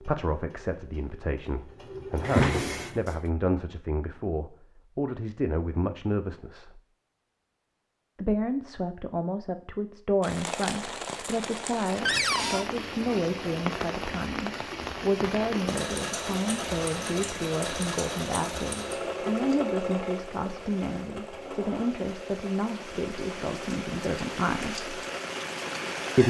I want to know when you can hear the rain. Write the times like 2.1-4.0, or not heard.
10.2-26.2.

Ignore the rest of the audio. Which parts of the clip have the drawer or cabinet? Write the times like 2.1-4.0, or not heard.
2.2-3.1, 12.1-12.7, 20.4-21.9.